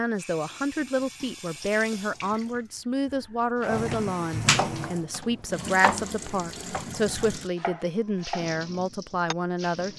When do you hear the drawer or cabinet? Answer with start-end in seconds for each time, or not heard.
3.5-4.0.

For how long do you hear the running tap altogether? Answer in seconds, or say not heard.
10 s.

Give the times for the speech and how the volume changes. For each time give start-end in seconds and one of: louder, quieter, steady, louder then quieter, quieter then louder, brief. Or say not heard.
0.0-9.9 steady.